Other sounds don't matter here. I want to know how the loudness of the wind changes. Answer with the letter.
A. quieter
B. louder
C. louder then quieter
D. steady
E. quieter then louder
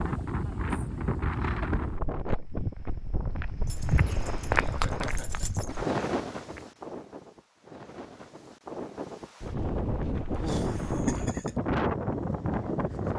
E.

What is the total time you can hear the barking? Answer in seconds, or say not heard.
2 s.